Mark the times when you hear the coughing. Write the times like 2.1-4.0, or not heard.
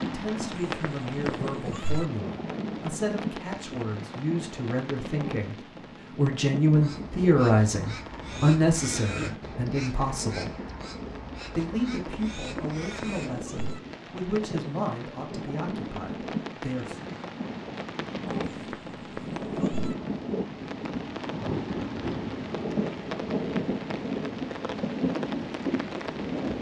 8.9-9.5.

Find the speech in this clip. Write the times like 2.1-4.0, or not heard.
0.0-10.6, 11.6-17.0.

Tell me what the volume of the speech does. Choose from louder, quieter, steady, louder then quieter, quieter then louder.
louder then quieter.